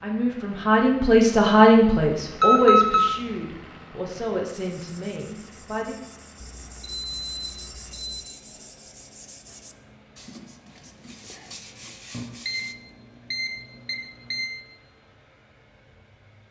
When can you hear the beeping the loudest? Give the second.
3 s.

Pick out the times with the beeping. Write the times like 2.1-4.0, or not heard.
2.4-3.1, 6.4-8.2, 12.1-14.5.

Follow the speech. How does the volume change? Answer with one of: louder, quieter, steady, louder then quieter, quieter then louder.
quieter.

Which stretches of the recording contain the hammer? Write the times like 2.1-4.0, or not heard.
not heard.